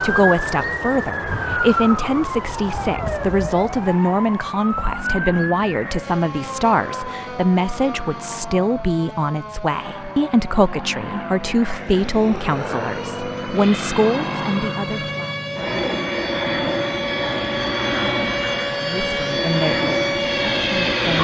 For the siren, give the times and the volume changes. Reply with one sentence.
You can hear the siren from 0.0 to 21.1 s, getting quieter then louder.